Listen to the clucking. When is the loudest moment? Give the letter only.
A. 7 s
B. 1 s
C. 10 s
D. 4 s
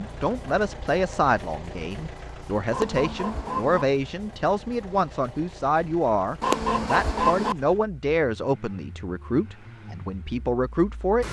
A.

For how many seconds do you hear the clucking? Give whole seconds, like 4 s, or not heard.
2 s.